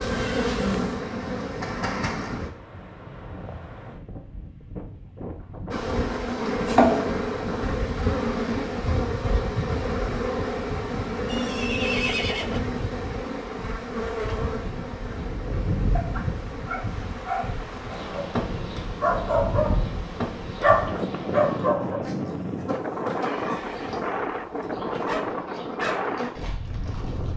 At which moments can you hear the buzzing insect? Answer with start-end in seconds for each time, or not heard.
0.0-2.5, 5.7-27.3.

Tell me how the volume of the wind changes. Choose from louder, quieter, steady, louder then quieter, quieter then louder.
louder.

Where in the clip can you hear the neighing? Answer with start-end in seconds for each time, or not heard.
0.0-1.1, 11.2-12.6, 23.1-24.1.